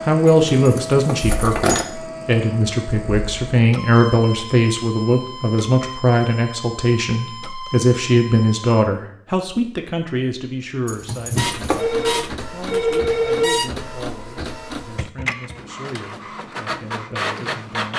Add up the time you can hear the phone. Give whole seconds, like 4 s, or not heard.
2 s.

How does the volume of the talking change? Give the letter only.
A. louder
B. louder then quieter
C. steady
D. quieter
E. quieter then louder
D.